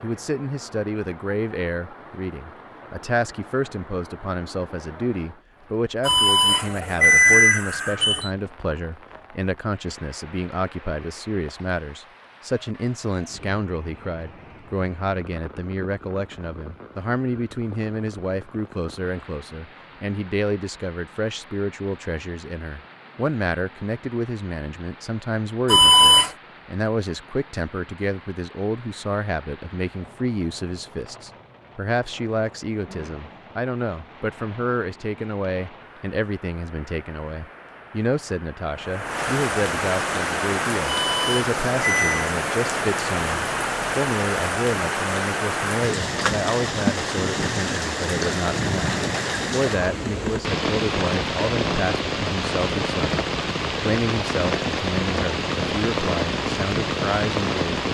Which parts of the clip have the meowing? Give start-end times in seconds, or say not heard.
not heard.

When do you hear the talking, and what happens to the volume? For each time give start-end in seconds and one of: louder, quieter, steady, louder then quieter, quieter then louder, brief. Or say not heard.
0.0-57.8 steady.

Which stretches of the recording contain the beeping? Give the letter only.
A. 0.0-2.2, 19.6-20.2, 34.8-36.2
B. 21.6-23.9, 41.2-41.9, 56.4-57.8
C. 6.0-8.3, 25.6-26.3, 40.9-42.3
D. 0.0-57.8
C.